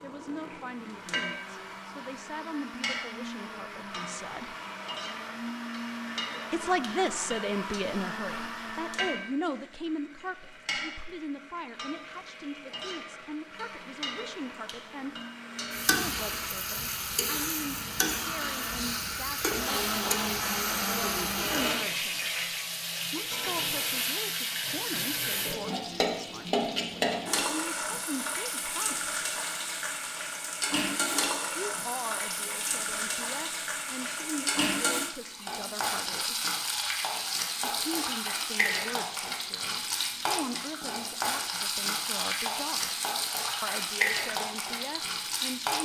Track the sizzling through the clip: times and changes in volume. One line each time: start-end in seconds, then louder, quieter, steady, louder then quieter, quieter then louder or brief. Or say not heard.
0.2-45.7 louder.